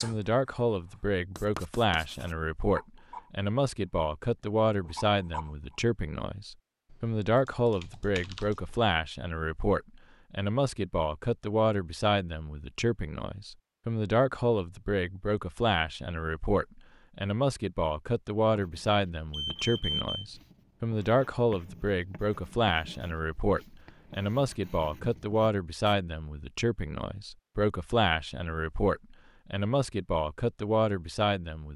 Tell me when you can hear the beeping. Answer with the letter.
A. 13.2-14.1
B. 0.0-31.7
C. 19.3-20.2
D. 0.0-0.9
C.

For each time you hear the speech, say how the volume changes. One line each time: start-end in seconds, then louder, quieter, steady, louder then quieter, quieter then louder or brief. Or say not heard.
0.0-31.7 steady.